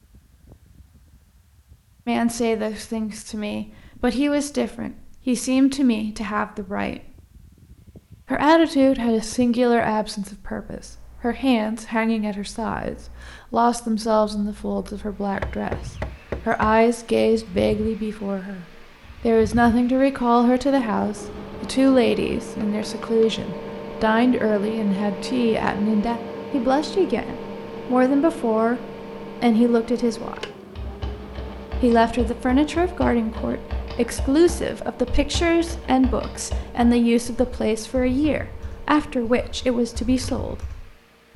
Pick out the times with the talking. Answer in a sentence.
The talking can be heard from 2.0 to 7.1 s, from 8.3 to 15.8 s, from 16.4 to 28.8 s, from 29.4 to 30.4 s and from 31.8 to 40.5 s.